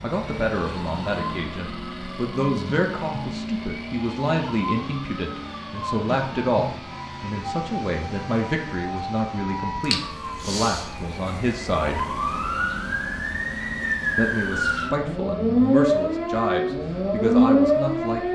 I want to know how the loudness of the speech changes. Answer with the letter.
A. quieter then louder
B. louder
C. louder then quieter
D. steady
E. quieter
D.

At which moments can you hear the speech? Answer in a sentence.
You can hear the speech from 0.0 to 12.1 s and from 14.2 to 18.3 s.